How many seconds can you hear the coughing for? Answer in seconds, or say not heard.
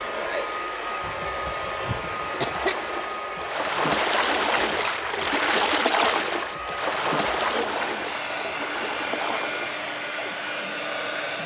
2 s.